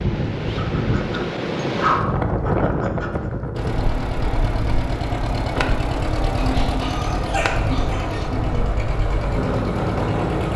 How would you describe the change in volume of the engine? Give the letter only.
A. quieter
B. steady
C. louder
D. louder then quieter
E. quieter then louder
B.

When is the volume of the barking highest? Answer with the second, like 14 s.
2 s.